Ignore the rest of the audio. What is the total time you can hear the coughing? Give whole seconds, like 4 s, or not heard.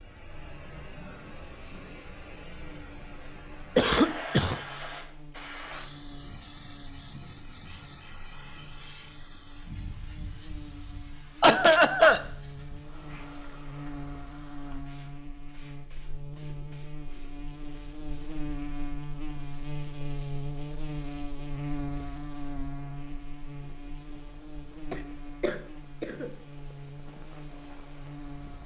3 s.